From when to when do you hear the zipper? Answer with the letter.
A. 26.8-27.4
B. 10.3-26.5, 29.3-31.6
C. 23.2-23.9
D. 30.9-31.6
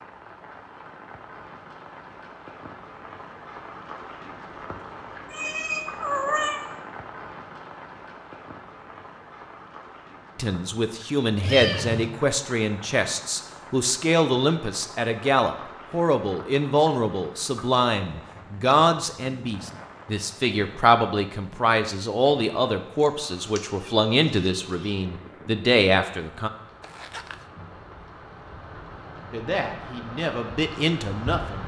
A.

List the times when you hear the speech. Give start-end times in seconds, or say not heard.
10.3-26.5, 29.3-31.6.